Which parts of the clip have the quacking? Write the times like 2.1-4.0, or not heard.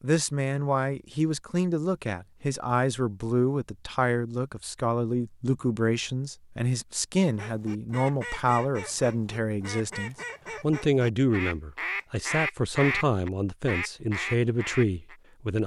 7.2-15.2.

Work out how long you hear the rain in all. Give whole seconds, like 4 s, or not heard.
not heard.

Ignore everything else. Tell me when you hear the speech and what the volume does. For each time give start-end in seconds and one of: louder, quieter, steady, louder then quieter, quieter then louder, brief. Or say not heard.
0.0-15.6 steady.